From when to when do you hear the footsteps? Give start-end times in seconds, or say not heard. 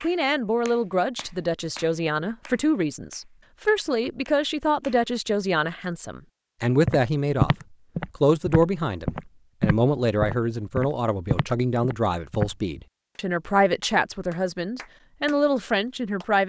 6.8-12.6.